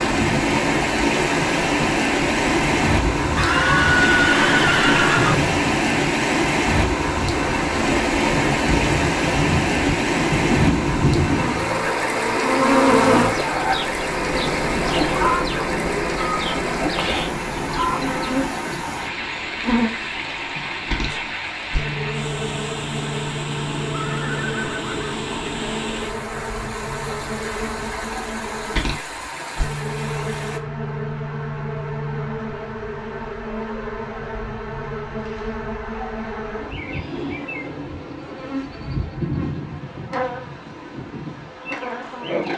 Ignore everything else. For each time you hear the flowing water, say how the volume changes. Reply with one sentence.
The flowing water can be heard from 0.0 to 30.6 s, getting quieter.